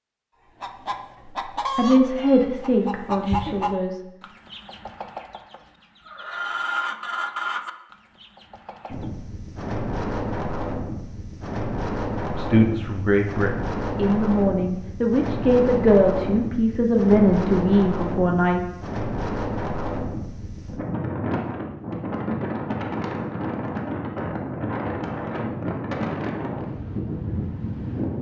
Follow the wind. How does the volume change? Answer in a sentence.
The loudness of the wind stays about the same.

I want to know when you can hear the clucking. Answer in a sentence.
The clucking can be heard from 0.6 to 9.1 s.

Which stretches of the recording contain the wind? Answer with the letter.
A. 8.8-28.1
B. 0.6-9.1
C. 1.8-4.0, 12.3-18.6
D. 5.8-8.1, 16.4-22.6
A.